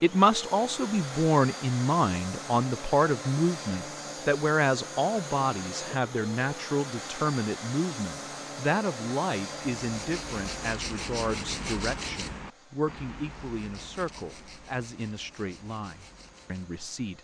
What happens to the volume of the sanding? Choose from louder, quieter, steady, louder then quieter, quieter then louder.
quieter.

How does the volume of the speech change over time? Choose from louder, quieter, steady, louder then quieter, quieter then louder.
quieter.